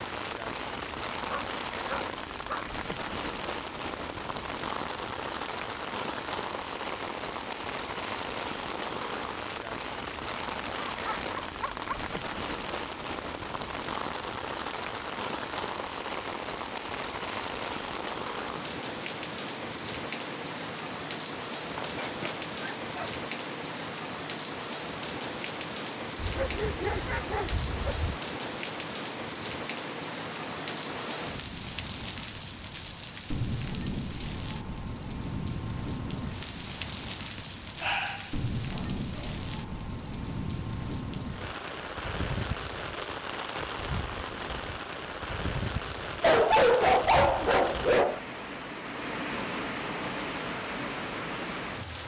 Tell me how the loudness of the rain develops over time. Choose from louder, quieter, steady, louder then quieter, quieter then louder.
steady.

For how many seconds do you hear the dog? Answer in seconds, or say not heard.
10 s.